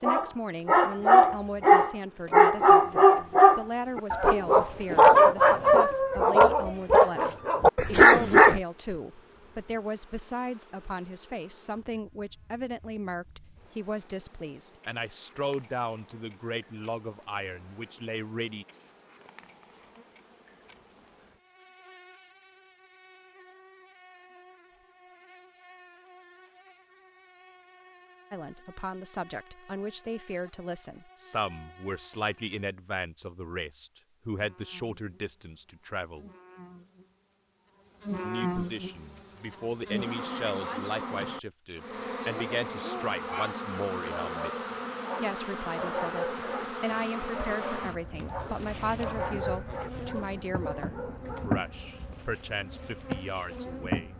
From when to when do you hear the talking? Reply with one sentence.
The talking can be heard from 0.0 to 18.6 s, from 28.3 to 36.3 s and from 38.2 to 54.1 s.